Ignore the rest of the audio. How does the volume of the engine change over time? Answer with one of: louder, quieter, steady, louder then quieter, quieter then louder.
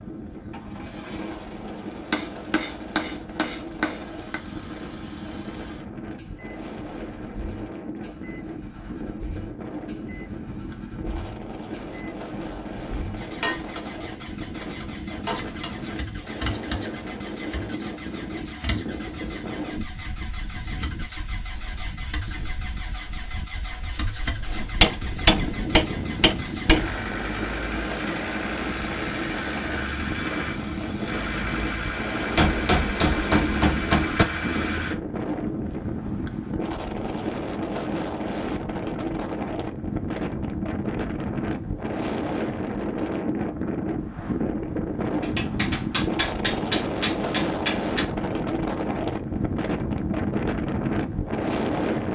louder.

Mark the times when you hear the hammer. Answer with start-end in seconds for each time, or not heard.
1.6-4.4, 13.4-15.7, 24.4-26.9, 32.4-34.2, 45.2-48.1.